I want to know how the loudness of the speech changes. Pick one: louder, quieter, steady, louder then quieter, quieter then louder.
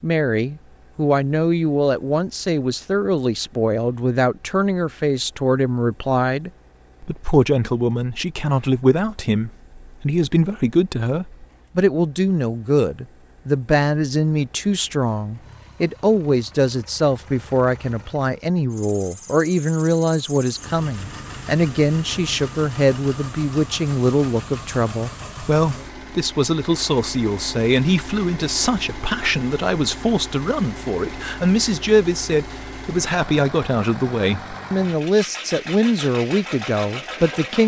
steady.